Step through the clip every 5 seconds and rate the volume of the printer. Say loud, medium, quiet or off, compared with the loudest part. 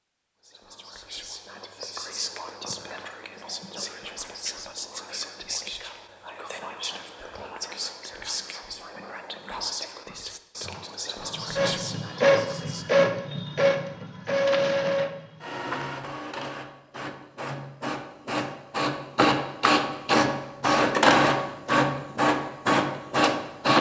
off, off, loud, medium, loud.